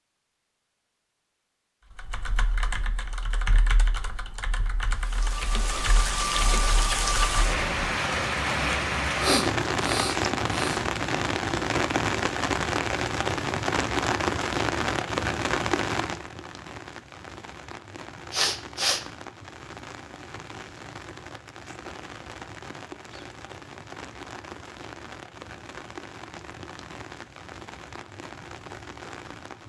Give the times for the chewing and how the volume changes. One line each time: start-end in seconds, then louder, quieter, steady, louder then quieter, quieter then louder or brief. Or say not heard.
not heard.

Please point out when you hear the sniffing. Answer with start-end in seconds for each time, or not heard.
9.2-10.8, 18.3-19.0.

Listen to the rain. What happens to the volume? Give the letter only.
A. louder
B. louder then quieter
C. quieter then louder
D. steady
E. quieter
E.